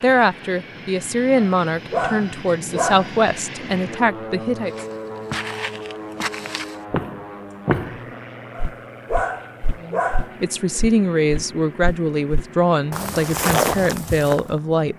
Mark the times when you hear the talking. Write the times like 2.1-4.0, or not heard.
0.0-4.8, 9.8-14.9.